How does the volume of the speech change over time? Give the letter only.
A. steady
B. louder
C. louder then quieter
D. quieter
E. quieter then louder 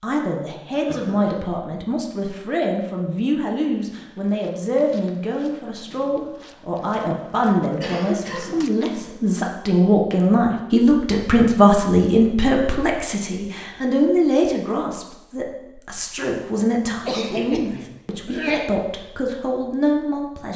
C.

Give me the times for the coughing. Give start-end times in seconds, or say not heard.
0.8-1.4, 7.8-8.7, 17.0-18.7.